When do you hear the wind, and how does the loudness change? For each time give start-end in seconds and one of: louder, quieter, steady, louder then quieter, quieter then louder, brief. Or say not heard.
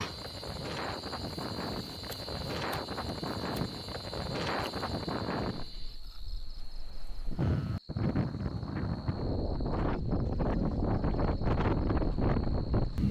0.0-13.0 louder.